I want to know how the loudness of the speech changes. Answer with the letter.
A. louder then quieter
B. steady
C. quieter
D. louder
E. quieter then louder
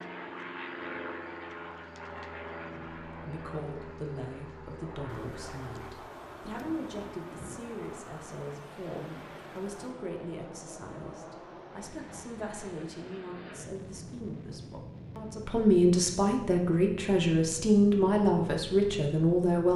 D.